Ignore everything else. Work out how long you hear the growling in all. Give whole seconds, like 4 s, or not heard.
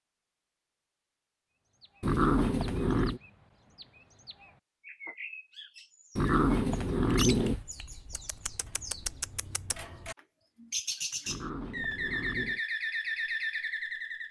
4 s.